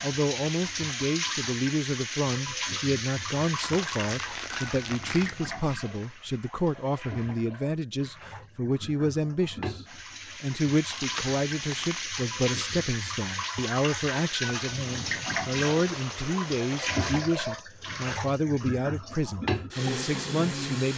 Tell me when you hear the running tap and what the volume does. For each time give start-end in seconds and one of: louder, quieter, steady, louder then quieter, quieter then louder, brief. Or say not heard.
0.0-20.9 quieter then louder.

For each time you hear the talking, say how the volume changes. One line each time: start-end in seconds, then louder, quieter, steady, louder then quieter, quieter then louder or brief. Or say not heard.
0.0-9.8 steady
10.4-20.9 steady.